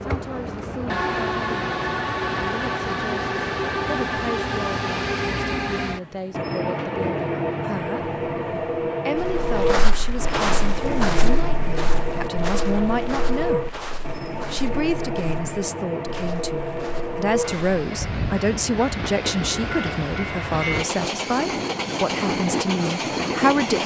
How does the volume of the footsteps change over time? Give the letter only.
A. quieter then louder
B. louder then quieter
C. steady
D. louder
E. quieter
E.